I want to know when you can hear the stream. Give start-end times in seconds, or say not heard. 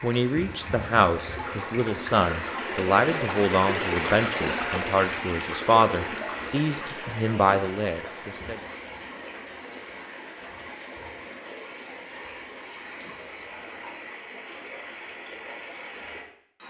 0.0-16.6.